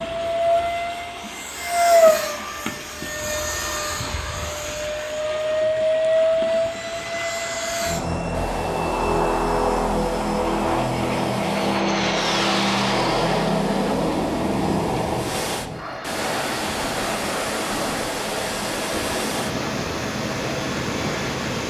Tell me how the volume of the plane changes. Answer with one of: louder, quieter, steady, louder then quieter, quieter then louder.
quieter.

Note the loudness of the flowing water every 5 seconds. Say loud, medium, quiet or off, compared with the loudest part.
medium, medium, medium, loud, loud.